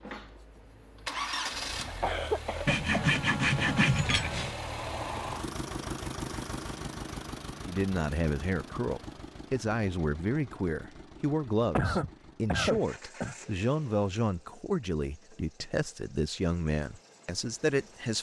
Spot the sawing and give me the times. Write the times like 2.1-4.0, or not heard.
2.6-4.5.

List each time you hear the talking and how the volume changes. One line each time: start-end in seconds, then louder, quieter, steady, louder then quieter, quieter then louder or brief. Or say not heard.
7.7-18.1 steady.